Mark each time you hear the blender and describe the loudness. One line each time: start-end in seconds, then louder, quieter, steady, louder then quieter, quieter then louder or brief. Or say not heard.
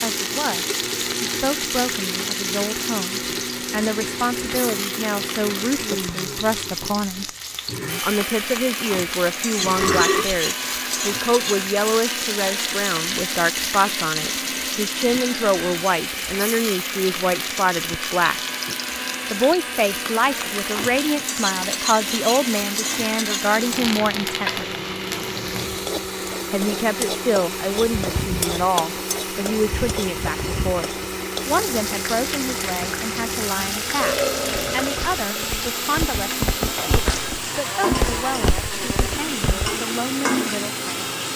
0.0-41.3 steady.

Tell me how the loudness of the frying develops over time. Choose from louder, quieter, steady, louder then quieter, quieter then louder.
steady.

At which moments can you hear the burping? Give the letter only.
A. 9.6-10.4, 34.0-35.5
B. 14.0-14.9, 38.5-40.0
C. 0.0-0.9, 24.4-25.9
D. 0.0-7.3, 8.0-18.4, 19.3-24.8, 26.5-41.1
A.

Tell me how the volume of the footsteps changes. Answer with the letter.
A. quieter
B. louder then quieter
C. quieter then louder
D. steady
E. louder
B.